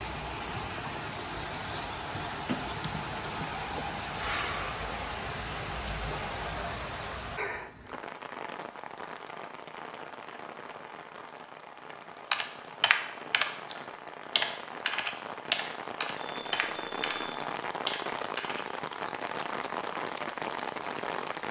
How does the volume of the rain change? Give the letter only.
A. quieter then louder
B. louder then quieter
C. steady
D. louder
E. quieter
A.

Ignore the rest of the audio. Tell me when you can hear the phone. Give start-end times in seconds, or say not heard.
2.5-3.5, 16.1-17.4.